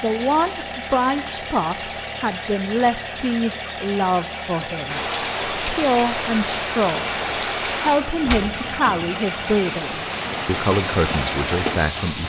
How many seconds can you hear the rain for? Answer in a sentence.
You can hear the rain for 7 seconds altogether.